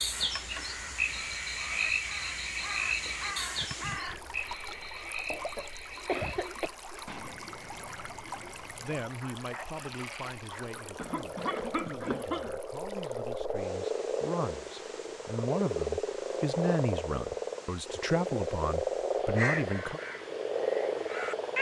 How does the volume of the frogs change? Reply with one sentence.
The volume of the frogs goes down, then up.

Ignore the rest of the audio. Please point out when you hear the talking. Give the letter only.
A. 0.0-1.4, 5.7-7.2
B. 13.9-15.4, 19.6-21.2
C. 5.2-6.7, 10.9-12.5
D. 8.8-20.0
D.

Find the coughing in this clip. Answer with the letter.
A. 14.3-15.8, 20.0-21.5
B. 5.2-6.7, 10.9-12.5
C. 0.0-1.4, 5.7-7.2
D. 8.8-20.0
B.